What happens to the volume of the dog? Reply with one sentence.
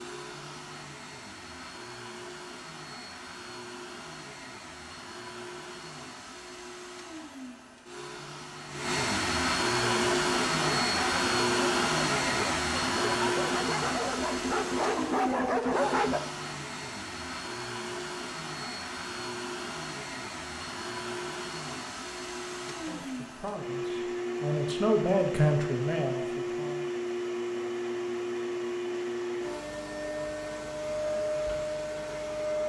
The volume of the dog goes up.